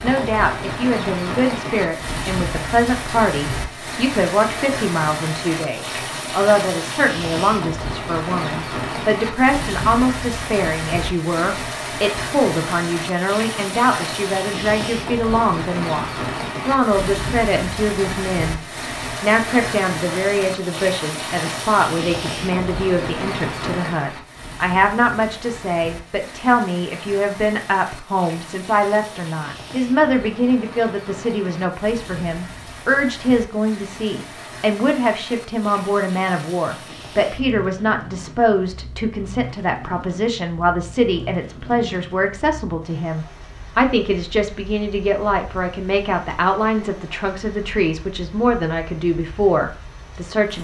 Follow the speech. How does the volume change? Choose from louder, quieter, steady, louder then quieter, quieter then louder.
steady.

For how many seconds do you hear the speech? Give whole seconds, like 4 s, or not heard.
50 s.